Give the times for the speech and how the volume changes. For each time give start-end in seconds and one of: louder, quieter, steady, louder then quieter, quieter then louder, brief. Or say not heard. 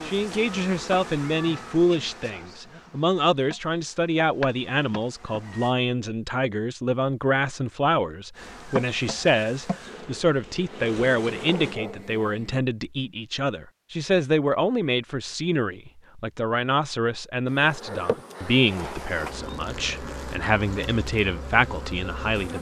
0.0-22.5 steady.